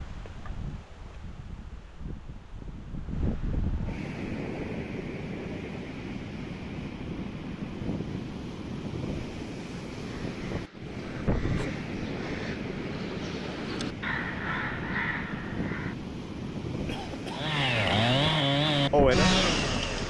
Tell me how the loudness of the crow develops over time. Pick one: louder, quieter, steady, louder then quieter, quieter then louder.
louder.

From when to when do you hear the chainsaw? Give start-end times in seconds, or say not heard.
17.4-20.0.